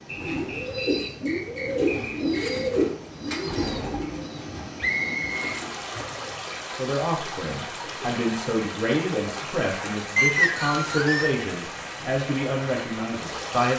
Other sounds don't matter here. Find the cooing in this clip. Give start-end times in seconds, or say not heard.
0.1-6.5.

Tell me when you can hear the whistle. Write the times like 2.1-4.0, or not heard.
0.1-2.6, 4.8-5.5, 10.2-11.4.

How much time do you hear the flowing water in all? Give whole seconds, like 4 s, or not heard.
14 s.